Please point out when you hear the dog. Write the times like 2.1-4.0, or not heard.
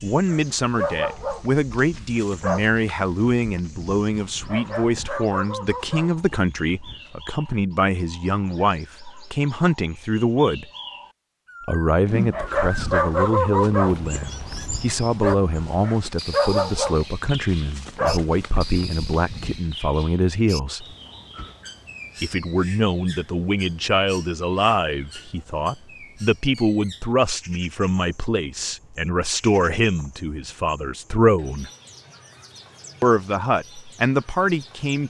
0.1-7.1, 12.2-19.8.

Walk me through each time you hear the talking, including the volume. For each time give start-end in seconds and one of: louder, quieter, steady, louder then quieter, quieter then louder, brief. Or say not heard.
0.0-10.7 steady
11.7-20.9 steady
22.2-31.7 steady
33.0-35.0 brief.